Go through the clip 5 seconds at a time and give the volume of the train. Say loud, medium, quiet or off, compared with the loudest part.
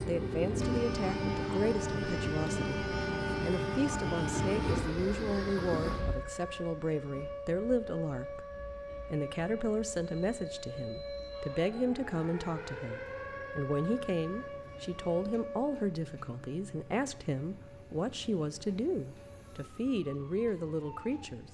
loud, medium, quiet, quiet, quiet.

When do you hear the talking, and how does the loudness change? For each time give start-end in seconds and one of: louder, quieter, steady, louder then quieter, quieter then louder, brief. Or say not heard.
0.1-21.5 steady.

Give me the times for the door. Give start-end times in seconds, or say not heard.
not heard.